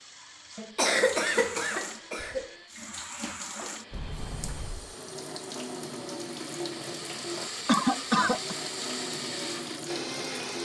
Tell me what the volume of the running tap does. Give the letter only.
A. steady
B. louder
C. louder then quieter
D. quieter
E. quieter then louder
A.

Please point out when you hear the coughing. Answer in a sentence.
You can hear the coughing from 0.6 to 2.5 s and from 7.7 to 8.6 s.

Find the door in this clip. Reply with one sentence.
The door can be heard from 3.9 to 5.0 s.